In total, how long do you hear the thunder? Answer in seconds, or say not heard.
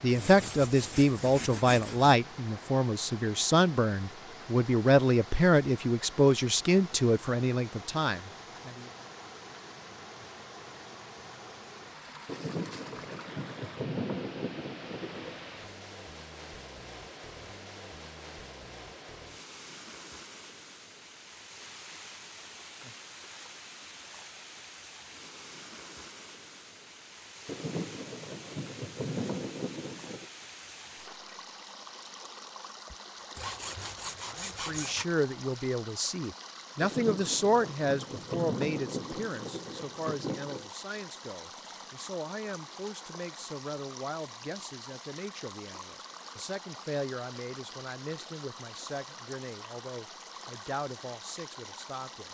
10 s.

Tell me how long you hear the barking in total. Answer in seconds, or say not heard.
not heard.